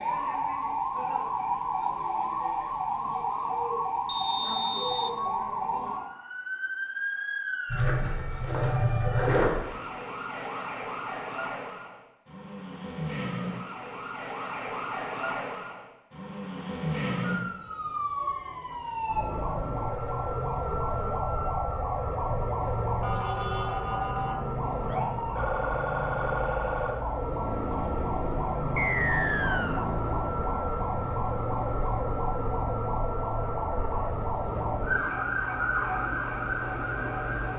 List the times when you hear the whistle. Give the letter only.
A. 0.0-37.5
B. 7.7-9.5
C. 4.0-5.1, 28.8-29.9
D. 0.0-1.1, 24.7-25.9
C.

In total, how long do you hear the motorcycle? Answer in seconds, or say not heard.
2 s.